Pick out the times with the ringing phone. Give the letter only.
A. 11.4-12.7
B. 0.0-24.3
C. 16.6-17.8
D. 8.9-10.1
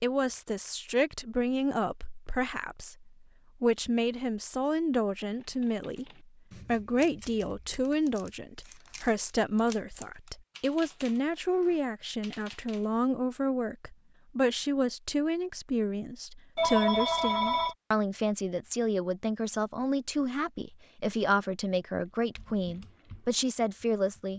C.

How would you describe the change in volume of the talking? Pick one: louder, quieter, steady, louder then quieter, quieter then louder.
steady.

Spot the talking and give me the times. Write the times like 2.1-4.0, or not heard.
0.0-24.3.